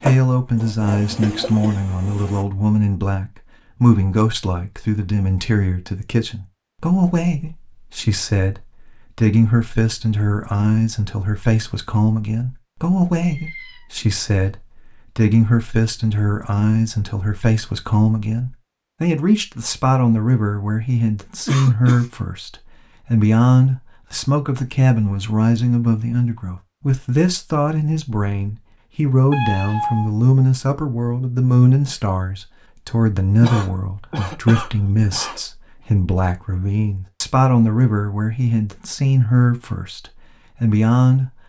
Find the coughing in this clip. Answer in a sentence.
You can hear the coughing from 1.2 to 1.8 s, from 21.4 to 22.1 s and from 33.4 to 35.4 s.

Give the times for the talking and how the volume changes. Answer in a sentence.
The talking can be heard from 0.0 to 41.4 s, at a steady volume.